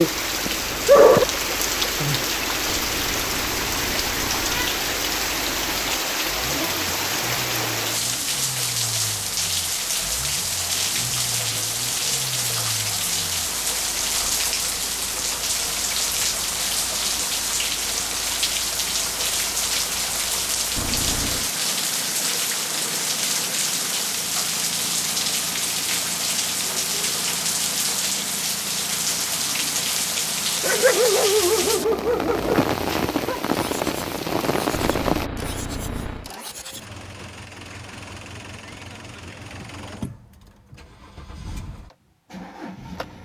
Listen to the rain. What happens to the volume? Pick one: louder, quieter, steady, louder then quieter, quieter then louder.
steady.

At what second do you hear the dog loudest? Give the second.
1 s.